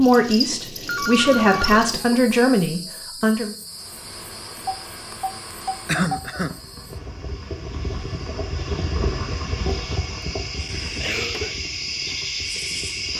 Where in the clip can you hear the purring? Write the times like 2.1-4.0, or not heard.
not heard.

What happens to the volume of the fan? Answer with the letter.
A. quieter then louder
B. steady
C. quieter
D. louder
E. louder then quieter
E.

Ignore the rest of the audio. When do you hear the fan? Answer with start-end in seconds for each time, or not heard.
3.6-13.1.